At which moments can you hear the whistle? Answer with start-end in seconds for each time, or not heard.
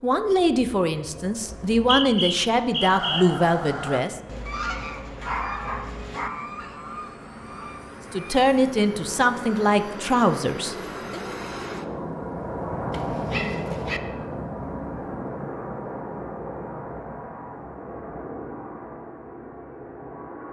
1.4-3.2.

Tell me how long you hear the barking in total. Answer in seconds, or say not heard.
3 s.